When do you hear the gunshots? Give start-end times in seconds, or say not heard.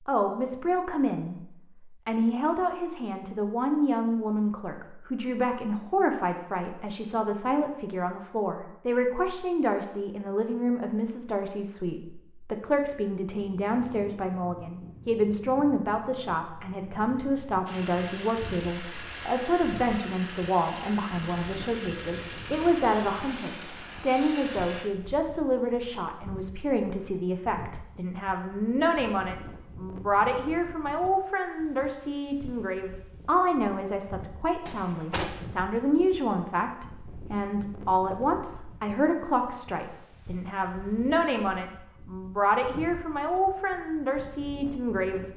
34.6-35.4.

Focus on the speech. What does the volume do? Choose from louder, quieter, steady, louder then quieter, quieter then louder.
steady.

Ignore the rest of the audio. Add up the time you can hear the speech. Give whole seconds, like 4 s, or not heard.
45 s.